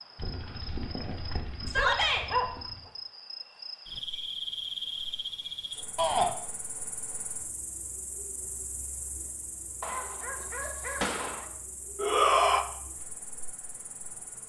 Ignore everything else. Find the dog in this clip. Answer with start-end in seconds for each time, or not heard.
0.1-2.9, 9.8-11.4.